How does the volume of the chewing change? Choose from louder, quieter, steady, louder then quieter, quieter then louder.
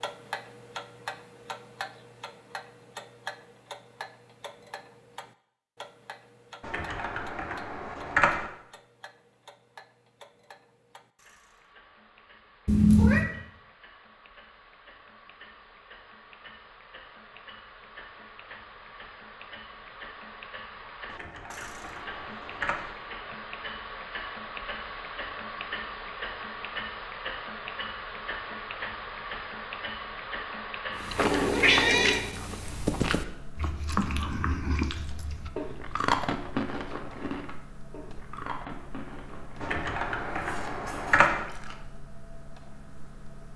quieter.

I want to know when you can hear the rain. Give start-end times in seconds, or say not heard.
not heard.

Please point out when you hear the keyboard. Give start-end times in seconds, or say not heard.
6.6-8.5, 21.1-22.9, 39.6-41.5.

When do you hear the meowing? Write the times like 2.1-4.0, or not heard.
12.7-13.3, 31.1-32.2.